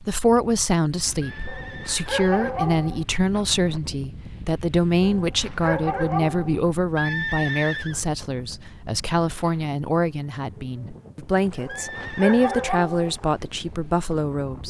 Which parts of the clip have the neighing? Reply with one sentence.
You can hear the neighing from 1.2 to 2.4 s, from 7.0 to 8.0 s and from 11.7 to 12.7 s.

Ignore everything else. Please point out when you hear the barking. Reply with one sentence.
The barking can be heard from 1.4 to 3.0 s, from 5.0 to 6.6 s and from 11.6 to 13.2 s.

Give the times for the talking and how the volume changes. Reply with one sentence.
You can hear the talking from 0.0 to 14.6 s, at a steady volume.